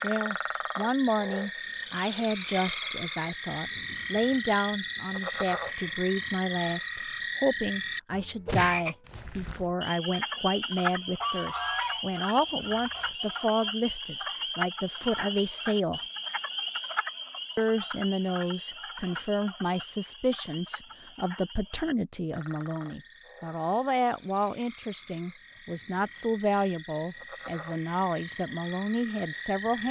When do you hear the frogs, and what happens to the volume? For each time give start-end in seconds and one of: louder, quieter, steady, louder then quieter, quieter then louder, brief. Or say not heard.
0.0-29.8 quieter.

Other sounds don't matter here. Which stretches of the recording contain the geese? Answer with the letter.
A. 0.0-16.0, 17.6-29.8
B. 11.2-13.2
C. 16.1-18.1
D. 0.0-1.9
B.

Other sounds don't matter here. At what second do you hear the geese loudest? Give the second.
12 s.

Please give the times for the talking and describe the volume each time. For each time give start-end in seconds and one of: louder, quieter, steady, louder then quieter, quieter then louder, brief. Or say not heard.
0.0-16.0 steady
17.6-29.8 steady.